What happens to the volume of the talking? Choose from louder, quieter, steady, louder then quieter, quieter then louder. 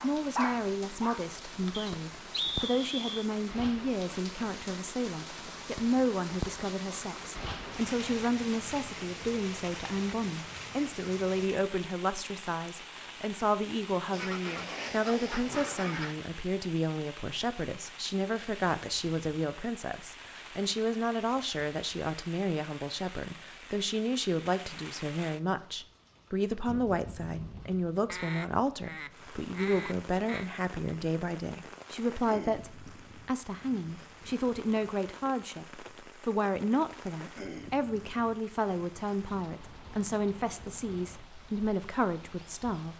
steady.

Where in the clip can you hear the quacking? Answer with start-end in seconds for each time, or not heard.
14.1-16.1, 28.1-30.5.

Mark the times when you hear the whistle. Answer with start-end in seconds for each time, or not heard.
1.7-3.2.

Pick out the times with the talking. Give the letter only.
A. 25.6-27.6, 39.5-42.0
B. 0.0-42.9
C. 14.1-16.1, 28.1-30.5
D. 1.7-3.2
B.